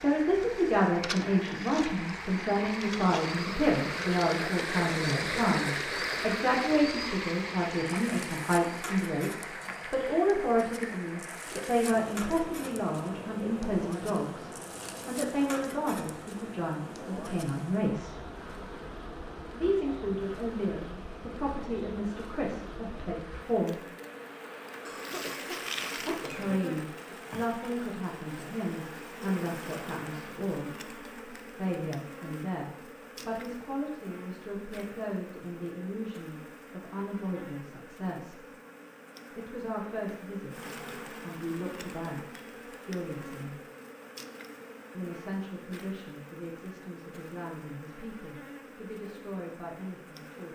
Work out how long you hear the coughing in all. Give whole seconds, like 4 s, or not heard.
2 s.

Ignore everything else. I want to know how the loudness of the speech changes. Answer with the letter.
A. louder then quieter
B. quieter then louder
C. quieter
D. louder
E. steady
C.